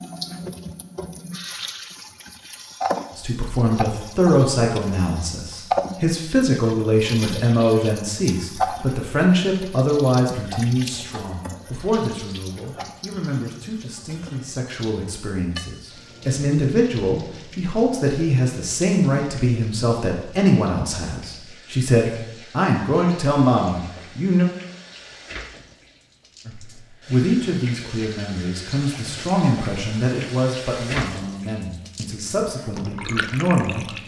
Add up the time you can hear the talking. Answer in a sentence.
The talking can be heard for 29 seconds in total.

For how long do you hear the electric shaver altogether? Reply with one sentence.
You can't hear the electric shaver here.